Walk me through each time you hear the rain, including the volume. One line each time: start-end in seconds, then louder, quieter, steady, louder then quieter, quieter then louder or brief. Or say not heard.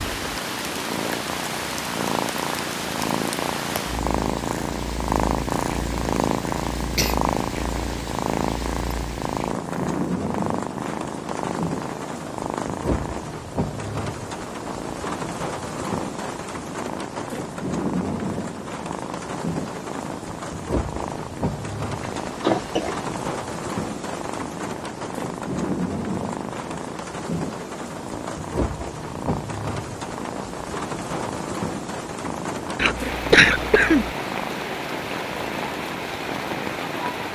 0.0-37.2 steady.